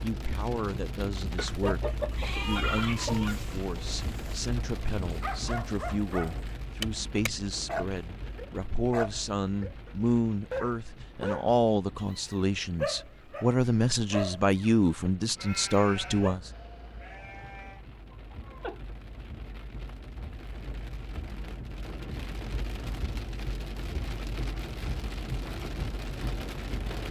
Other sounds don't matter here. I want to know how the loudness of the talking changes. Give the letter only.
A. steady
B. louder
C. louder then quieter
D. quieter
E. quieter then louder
B.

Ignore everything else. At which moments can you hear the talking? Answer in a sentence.
You can hear the talking from 0.0 to 16.5 s.